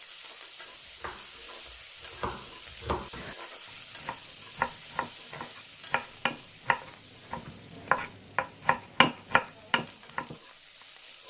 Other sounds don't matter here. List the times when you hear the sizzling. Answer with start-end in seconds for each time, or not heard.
0.0-11.2.